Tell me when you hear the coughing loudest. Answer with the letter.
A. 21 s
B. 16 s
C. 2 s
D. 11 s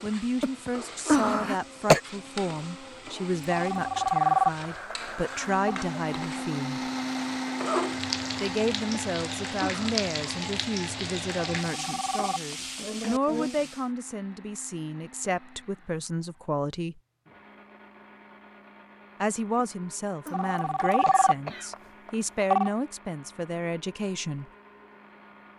C.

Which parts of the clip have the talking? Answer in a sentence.
You can hear the talking from 0.0 to 6.8 s, from 8.4 to 17.0 s and from 19.2 to 24.4 s.